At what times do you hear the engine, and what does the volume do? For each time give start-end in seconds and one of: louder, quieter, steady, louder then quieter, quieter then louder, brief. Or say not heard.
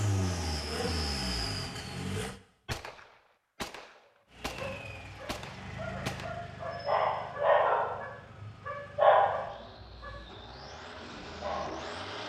0.0-2.4 brief
4.3-12.2 quieter then louder.